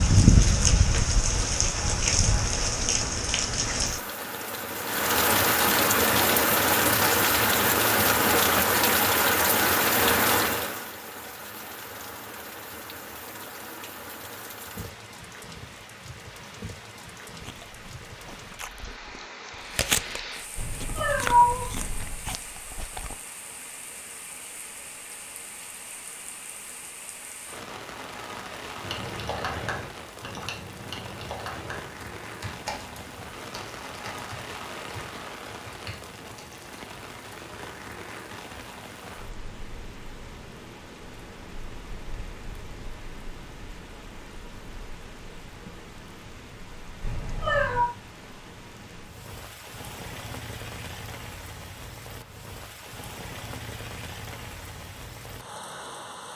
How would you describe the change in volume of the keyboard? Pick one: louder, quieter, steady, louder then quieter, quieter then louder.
quieter.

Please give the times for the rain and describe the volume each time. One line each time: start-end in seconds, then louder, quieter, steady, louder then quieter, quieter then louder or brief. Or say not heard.
0.0-56.3 quieter.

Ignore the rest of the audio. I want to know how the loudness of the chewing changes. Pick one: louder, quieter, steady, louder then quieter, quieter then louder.
louder then quieter.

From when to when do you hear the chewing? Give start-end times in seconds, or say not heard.
17.4-23.1.